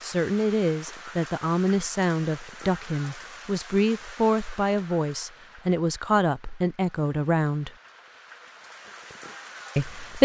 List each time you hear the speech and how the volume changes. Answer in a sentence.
You can hear the speech from 0.0 to 7.7 s, at a steady volume; and briefly from 9.8 to 10.2 s.